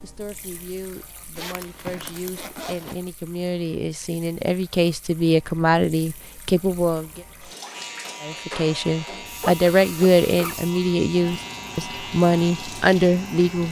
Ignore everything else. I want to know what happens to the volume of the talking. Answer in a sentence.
The loudness of the talking goes up.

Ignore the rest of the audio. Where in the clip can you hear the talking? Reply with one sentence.
The talking can be heard from 0.0 to 7.2 s and from 8.2 to 13.6 s.